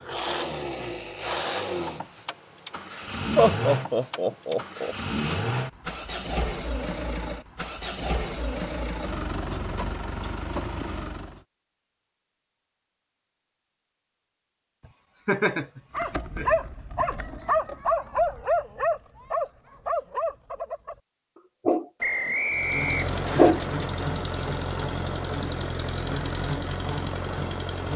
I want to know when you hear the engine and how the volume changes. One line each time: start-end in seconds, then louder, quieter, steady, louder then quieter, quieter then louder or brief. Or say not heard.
0.0-11.4 steady
22.5-27.9 steady.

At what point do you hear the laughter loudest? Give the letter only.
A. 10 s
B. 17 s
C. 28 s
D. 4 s
D.